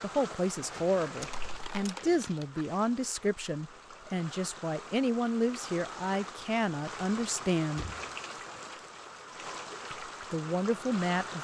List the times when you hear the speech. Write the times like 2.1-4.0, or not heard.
0.0-7.8, 9.9-11.3.